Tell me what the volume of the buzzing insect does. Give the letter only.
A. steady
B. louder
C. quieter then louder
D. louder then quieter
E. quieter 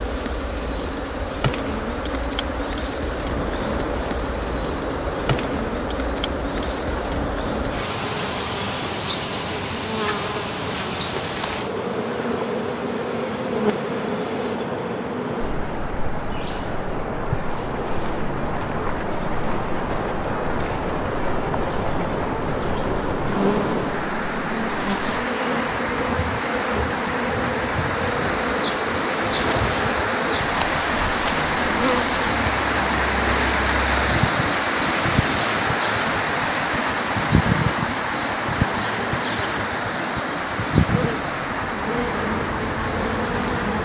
A.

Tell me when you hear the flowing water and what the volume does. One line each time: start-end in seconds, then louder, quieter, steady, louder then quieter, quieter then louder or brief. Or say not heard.
0.0-43.8 louder.